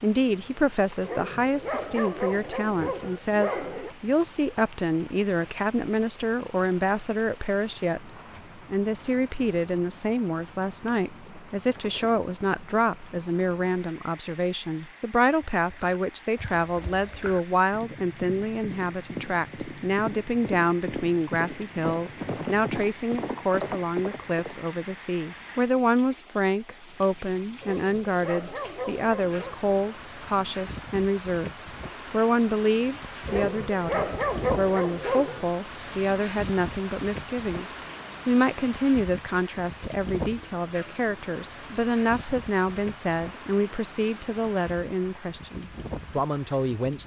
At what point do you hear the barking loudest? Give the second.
34 s.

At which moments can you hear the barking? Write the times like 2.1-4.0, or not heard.
1.0-4.0, 27.6-29.6, 33.2-35.5.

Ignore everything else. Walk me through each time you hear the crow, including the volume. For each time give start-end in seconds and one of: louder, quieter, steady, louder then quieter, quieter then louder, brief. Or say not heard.
not heard.